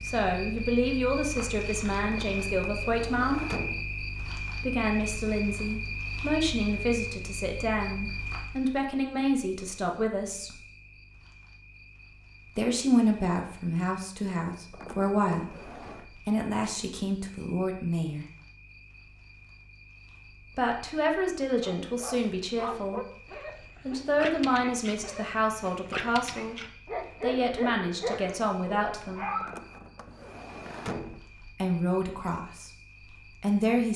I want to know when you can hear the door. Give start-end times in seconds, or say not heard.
2.0-3.9, 14.7-16.1, 29.4-31.2.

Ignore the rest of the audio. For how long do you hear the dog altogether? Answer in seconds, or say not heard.
8 s.